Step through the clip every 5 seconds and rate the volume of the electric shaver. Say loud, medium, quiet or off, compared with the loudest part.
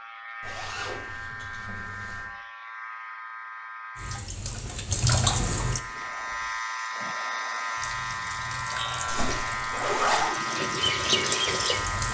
medium, loud, loud.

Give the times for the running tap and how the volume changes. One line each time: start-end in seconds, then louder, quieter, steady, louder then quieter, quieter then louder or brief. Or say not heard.
4.0-5.8 brief
7.8-12.0 louder.